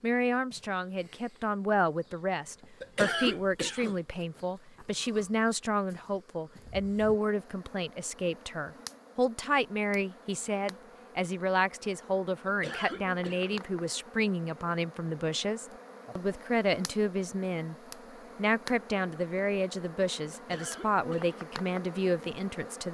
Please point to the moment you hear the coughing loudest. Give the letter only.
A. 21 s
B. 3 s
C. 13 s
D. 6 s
B.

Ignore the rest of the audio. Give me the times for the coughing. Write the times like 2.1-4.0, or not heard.
2.8-4.0, 12.4-13.6, 20.3-21.4.